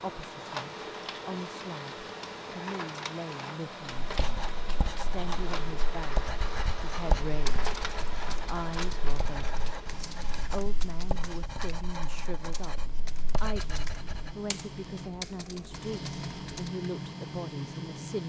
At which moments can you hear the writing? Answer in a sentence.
You can hear the writing from 4.0 to 14.3 s.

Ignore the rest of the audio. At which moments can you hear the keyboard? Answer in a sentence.
The keyboard can be heard from 7.2 to 16.7 s.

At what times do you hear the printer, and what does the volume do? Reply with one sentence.
The printer can be heard from 0.0 to 18.2 s, getting quieter then louder.